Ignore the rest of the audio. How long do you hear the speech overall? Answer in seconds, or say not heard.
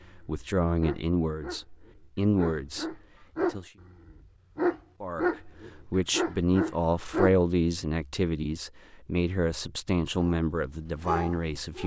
10 s.